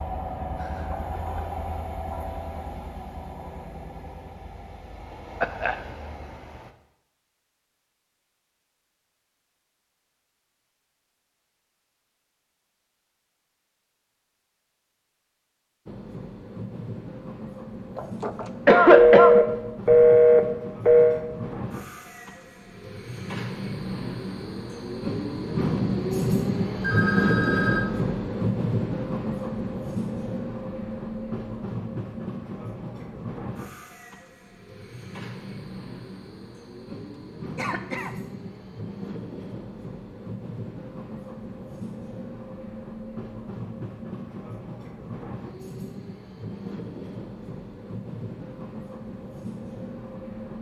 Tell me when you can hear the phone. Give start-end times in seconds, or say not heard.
18.9-21.2, 26.8-27.9.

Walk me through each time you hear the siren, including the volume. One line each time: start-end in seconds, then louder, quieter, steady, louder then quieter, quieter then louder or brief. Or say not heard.
not heard.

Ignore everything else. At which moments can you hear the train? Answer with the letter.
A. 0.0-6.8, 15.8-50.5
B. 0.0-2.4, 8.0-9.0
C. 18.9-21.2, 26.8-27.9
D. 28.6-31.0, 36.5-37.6
A.